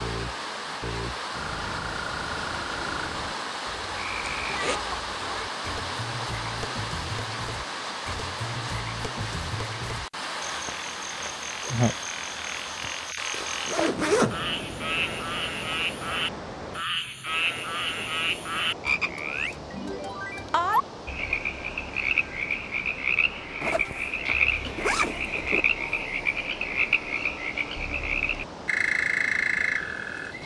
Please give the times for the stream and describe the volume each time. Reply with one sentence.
The stream can be heard from 0.0 to 30.4 s, getting quieter.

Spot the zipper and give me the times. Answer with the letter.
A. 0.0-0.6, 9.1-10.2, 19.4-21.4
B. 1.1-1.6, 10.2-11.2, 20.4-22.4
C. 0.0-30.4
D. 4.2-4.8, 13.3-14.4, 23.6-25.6
D.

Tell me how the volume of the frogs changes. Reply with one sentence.
The volume of the frogs goes up.